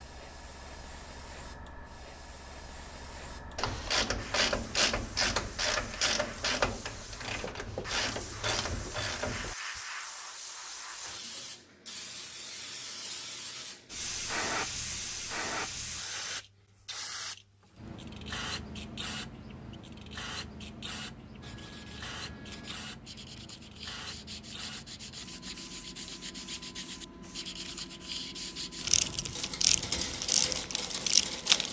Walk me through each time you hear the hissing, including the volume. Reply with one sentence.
You can hear the hissing from 0.0 to 31.6 s, getting louder then quieter.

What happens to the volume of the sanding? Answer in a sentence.
The loudness of the sanding goes up.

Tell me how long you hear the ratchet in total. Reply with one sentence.
The ratchet can be heard for 9 seconds in total.